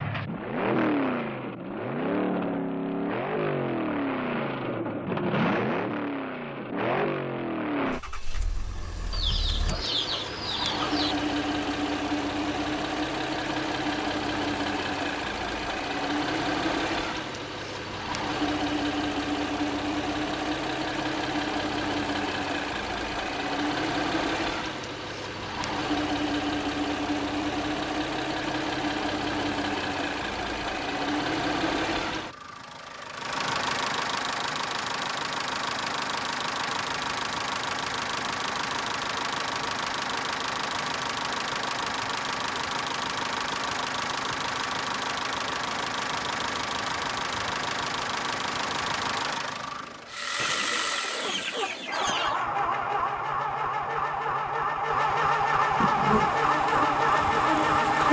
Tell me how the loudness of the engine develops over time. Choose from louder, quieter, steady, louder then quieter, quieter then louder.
steady.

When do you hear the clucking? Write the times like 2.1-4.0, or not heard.
9.1-11.2, 50.4-52.5.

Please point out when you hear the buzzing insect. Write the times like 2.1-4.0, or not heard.
55.6-58.0.